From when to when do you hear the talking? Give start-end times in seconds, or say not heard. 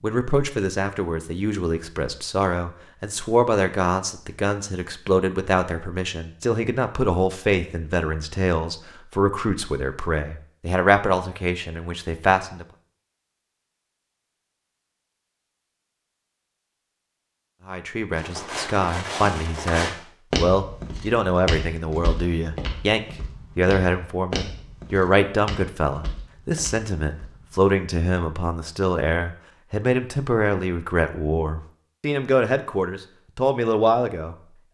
0.0-12.7, 17.6-34.4.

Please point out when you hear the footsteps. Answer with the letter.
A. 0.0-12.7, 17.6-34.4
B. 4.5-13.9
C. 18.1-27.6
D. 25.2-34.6
C.